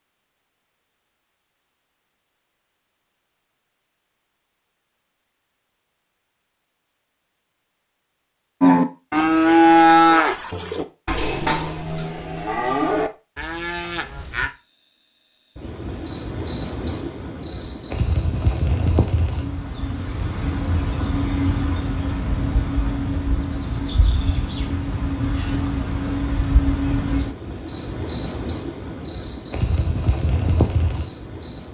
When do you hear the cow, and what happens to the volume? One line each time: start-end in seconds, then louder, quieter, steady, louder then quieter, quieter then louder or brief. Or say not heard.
8.6-14.5 quieter.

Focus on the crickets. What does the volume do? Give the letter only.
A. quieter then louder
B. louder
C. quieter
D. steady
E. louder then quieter
D.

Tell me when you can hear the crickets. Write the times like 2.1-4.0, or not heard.
14.2-31.6.